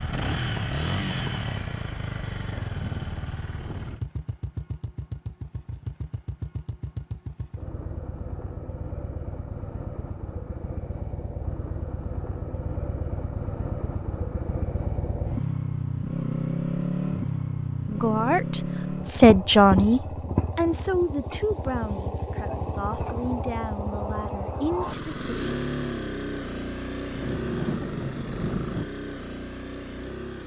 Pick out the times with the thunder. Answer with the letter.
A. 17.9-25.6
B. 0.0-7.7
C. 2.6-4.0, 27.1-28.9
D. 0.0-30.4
C.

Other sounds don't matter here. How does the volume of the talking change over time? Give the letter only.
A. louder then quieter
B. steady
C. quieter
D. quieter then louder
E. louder
C.